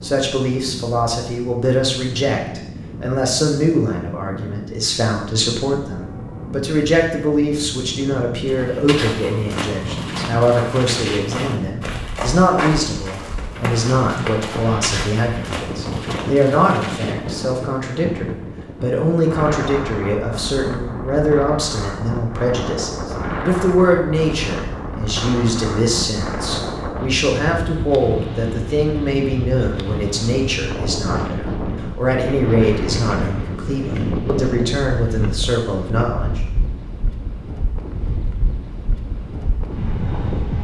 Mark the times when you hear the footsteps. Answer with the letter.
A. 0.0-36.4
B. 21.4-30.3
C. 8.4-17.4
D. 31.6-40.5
C.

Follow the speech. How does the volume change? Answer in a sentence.
The loudness of the speech stays about the same.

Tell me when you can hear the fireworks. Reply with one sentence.
You can't hear the fireworks here.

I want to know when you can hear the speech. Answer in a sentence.
You can hear the speech from 0.0 to 36.4 s.